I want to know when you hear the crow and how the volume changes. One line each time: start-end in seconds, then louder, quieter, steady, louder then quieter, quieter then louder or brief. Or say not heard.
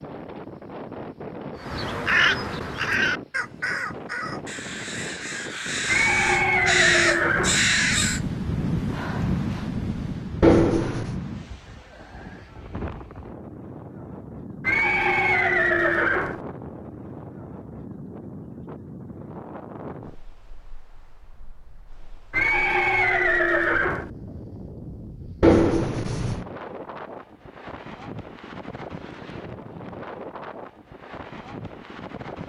1.6-8.2 quieter then louder.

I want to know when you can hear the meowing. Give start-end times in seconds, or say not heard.
10.4-11.2, 25.4-26.4.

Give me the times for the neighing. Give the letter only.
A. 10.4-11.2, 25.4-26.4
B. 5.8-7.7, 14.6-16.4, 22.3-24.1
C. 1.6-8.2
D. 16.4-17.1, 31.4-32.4
B.